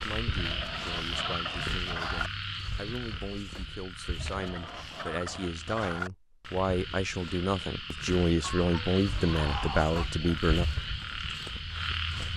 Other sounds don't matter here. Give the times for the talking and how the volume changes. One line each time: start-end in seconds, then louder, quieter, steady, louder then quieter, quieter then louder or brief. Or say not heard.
0.0-10.7 louder.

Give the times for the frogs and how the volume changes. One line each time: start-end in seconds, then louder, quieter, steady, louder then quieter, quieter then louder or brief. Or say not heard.
0.0-12.3 quieter then louder.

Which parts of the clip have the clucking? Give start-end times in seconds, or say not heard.
0.3-2.3, 4.2-6.1, 8.4-10.4.